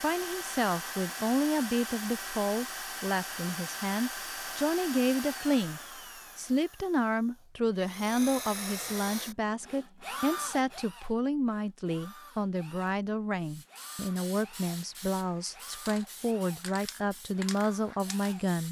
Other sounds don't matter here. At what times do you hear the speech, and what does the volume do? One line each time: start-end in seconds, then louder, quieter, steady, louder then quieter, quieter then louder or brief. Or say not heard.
0.0-18.6 steady.